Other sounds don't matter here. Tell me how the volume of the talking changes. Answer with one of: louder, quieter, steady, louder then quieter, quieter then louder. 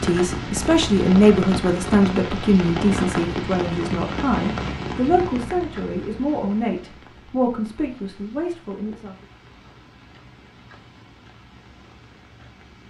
quieter.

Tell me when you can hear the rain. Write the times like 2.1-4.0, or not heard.
0.0-12.8.